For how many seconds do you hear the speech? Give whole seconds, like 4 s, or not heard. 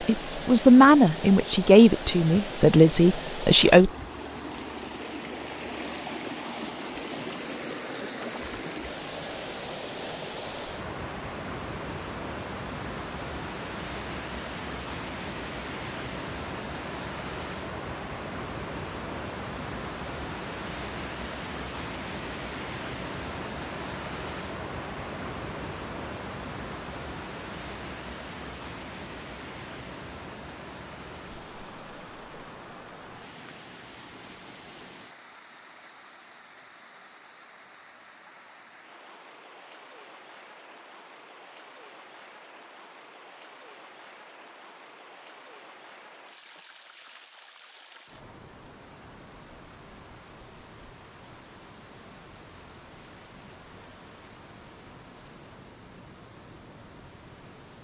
4 s.